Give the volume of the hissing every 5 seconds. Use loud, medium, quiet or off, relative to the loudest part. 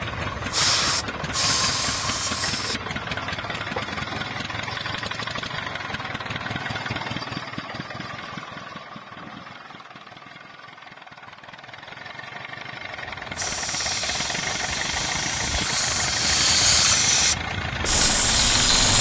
medium, off, medium, loud.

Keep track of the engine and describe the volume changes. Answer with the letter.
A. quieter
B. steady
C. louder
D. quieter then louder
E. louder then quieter
D.